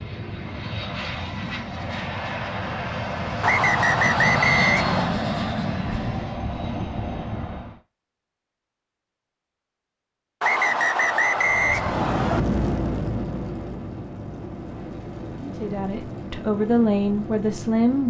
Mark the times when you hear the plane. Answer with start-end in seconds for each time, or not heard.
0.0-7.8, 11.2-18.0.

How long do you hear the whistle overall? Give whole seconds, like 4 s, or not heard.
4 s.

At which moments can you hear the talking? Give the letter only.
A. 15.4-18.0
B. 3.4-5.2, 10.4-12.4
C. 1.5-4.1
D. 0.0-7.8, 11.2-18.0
A.